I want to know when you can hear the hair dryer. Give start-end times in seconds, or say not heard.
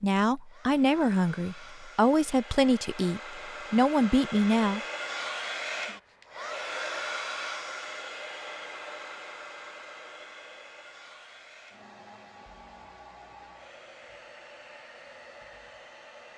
0.3-16.3.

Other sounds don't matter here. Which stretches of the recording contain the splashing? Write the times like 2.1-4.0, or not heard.
not heard.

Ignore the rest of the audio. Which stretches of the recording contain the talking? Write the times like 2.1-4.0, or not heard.
0.0-4.8.